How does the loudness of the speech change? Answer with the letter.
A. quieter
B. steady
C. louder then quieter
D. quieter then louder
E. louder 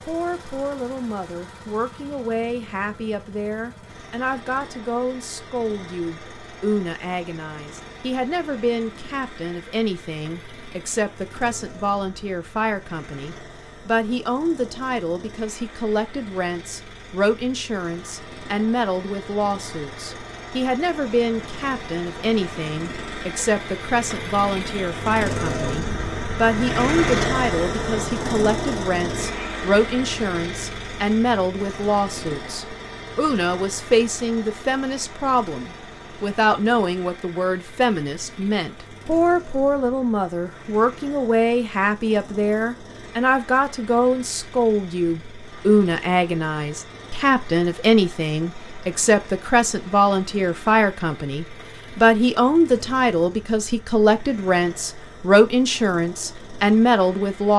E.